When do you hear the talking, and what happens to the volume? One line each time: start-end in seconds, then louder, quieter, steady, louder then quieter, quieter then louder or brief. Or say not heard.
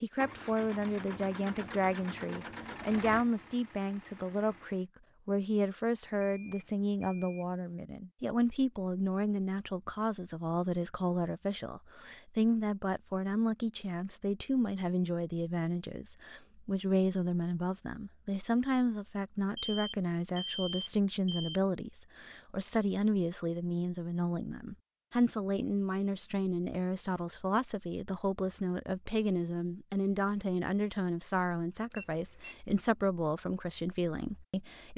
0.0-34.9 steady.